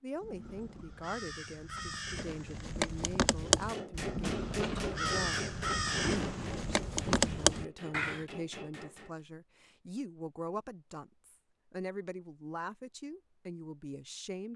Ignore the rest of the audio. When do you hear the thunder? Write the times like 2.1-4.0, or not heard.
4.2-7.6.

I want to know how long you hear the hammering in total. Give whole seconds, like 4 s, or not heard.
6 s.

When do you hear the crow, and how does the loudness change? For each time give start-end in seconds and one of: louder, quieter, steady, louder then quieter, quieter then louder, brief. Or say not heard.
0.1-8.2 louder.